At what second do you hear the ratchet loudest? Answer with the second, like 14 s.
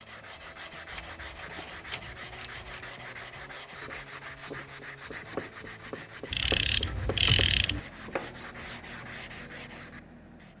7 s.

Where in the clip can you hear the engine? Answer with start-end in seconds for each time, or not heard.
7.7-10.5.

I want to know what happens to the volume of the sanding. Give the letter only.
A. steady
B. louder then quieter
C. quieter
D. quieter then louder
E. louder
A.